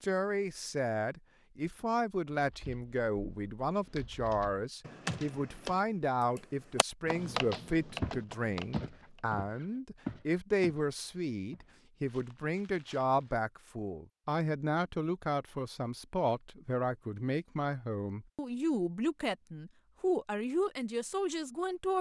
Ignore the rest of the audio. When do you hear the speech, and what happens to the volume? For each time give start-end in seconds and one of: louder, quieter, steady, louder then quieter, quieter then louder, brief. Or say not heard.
0.0-21.9 steady.